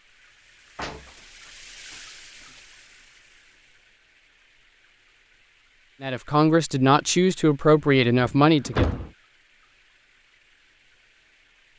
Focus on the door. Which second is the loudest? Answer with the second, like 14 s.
9 s.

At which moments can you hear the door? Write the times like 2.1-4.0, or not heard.
0.8-2.6, 7.8-9.1.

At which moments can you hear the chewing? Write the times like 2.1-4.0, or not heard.
not heard.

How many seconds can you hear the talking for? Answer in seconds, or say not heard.
3 s.